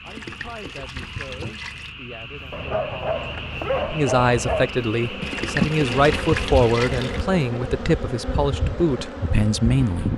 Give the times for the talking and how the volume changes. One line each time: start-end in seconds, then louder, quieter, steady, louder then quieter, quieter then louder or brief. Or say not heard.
0.0-10.1 louder.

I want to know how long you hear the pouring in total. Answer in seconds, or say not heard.
4 s.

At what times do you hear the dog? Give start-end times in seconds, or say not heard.
2.5-4.7.